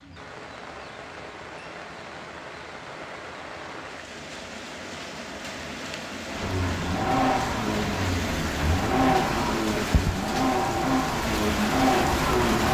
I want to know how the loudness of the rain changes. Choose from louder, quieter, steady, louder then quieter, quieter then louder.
louder.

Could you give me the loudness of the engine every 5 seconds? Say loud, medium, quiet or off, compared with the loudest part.
off, loud, loud.